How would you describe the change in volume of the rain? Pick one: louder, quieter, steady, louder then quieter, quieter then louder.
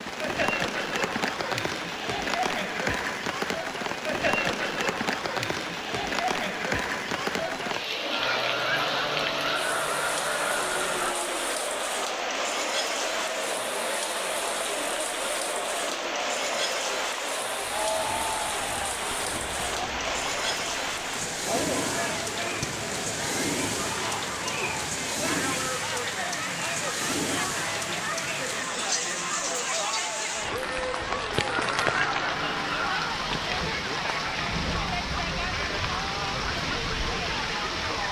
steady.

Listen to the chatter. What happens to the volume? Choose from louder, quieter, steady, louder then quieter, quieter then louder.
steady.